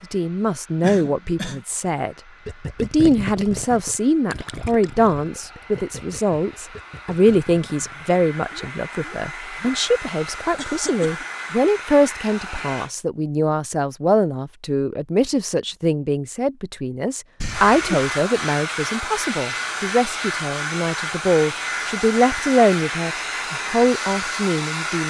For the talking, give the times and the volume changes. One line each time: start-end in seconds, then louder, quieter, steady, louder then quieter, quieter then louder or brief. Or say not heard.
0.0-2.1 brief
2.8-25.0 steady.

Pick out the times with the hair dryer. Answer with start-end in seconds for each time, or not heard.
0.0-12.9, 17.4-25.0.